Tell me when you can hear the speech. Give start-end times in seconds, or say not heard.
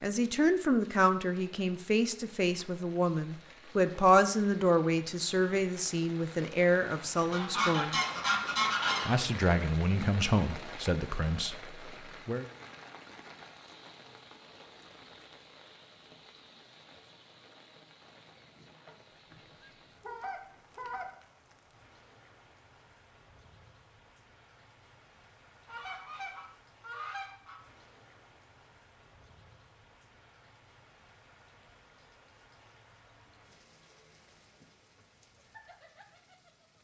0.0-8.0, 9.1-12.4.